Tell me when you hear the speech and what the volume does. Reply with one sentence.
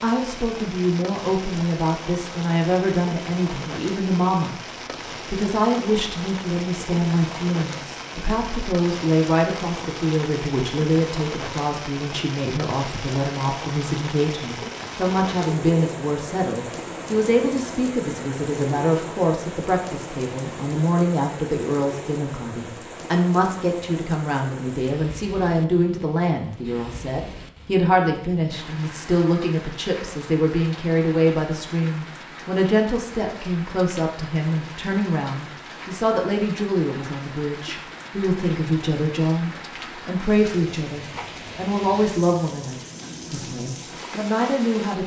You can hear the speech from 0.0 to 4.5 s, at a steady volume; and from 5.2 to 45.0 s, at a steady volume.